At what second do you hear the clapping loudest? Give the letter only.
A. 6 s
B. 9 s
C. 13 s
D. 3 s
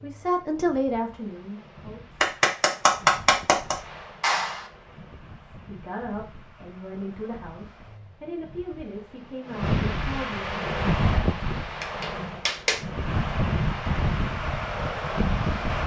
D.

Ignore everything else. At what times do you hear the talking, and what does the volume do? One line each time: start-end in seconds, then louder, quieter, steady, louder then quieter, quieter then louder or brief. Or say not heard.
0.0-2.0 brief
5.5-10.7 steady.